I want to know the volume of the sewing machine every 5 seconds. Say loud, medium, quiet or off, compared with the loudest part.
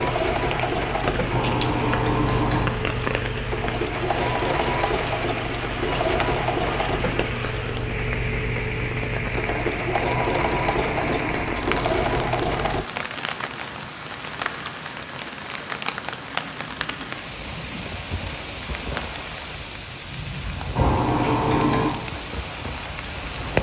loud, loud, loud, off, off.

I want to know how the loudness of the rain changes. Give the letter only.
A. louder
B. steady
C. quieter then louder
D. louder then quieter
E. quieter
B.